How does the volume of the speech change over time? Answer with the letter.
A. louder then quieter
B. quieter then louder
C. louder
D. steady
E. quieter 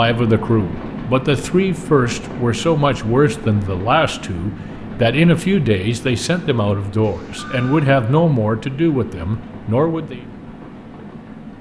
D.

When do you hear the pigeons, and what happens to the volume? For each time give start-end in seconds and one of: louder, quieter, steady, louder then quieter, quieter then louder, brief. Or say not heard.
not heard.